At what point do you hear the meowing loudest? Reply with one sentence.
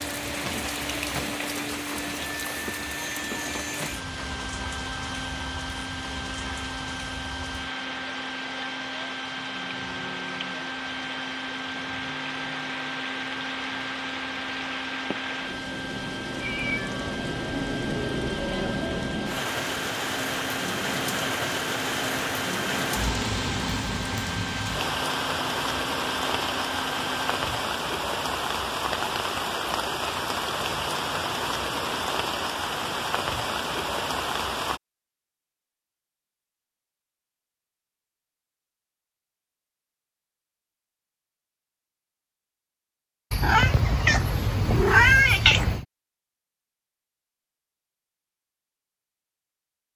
The volume of the meowing peaks at 45 seconds.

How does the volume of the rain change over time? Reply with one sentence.
The loudness of the rain goes up.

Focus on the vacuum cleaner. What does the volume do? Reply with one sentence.
The loudness of the vacuum cleaner stays about the same.